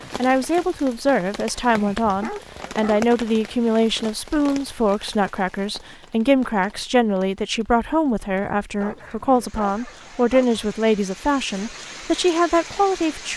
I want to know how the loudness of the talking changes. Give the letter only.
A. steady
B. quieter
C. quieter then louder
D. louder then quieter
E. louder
A.